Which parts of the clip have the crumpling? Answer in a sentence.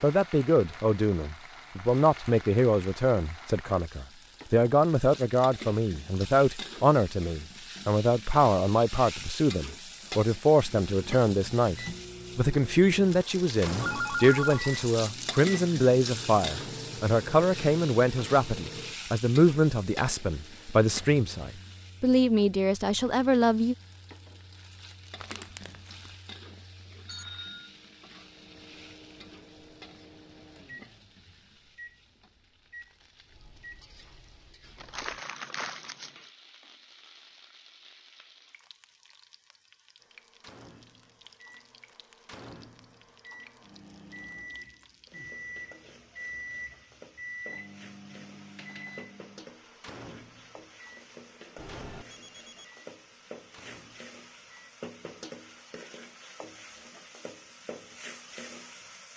The crumpling can be heard from 25.1 to 26.1 s and from 34.8 to 36.3 s.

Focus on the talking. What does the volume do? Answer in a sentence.
The volume of the talking stays about the same.